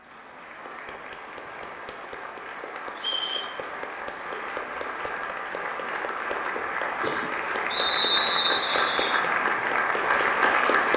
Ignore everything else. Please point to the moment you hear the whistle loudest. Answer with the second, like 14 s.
8 s.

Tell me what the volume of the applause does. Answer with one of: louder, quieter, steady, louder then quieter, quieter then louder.
louder.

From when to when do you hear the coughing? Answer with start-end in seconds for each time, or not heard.
6.5-7.4.